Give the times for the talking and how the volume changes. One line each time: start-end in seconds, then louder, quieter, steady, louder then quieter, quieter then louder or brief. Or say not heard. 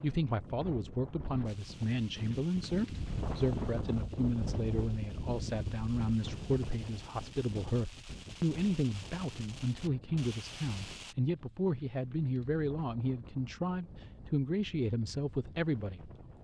0.0-16.3 steady.